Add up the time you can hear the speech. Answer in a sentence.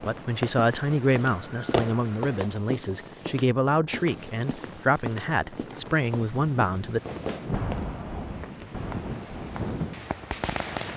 You can hear the speech for 7 seconds altogether.